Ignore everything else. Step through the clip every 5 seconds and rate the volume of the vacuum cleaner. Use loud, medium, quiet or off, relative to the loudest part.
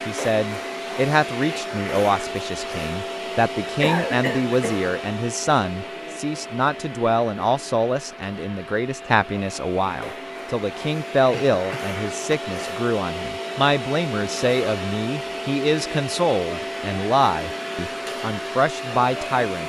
loud, medium, loud, loud.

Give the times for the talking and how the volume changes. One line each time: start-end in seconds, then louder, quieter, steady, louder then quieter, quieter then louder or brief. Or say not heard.
0.1-19.6 steady.